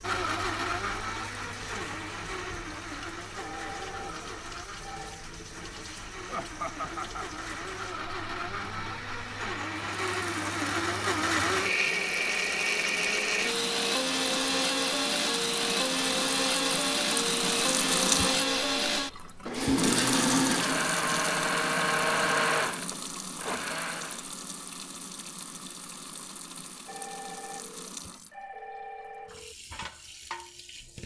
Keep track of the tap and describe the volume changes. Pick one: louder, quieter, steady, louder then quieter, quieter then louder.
louder then quieter.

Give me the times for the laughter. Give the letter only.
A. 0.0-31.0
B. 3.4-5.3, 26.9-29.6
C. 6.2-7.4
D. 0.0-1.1
C.